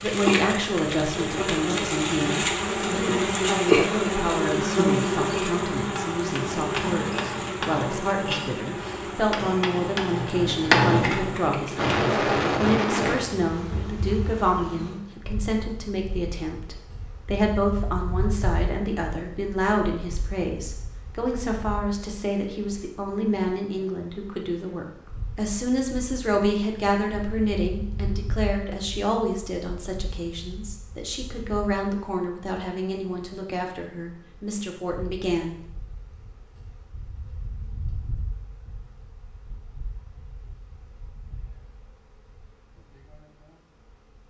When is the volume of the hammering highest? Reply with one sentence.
The volume of the hammering peaks at 11 seconds.